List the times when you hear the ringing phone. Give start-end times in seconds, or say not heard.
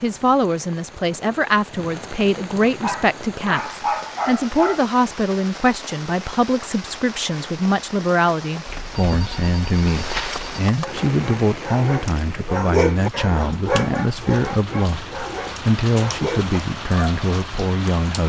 8.7-10.6.